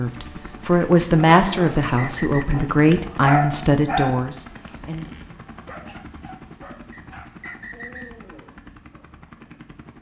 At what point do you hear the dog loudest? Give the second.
3 s.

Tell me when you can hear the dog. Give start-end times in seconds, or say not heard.
0.8-9.1.